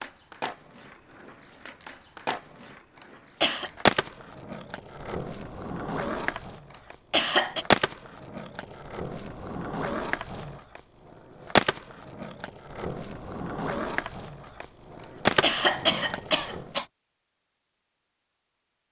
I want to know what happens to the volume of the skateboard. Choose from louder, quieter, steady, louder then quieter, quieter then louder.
louder.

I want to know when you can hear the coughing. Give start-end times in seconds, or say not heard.
3.0-3.7, 6.7-7.7, 14.9-16.9.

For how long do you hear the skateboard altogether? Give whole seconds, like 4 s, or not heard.
17 s.